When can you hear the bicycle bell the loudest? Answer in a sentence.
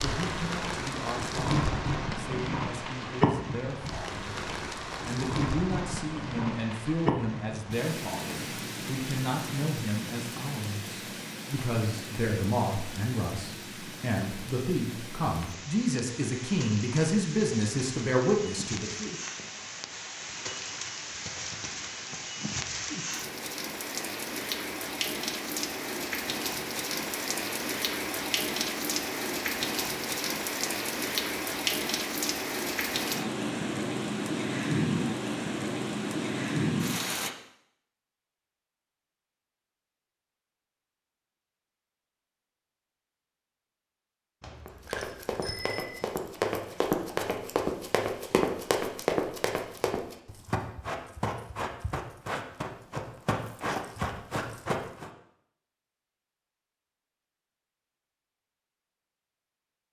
The volume of the bicycle bell peaks at 46 seconds.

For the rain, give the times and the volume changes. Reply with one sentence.
The rain can be heard from 0.0 to 37.3 s, getting quieter then louder.